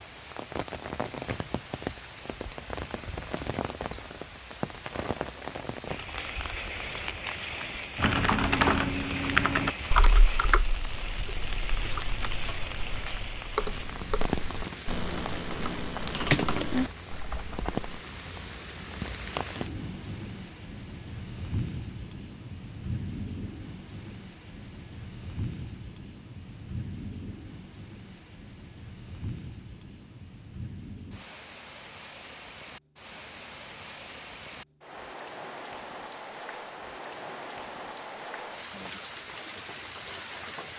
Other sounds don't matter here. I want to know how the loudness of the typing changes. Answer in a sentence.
The volume of the typing goes down, then up.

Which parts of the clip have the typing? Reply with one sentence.
The typing can be heard from 8.0 to 17.8 s.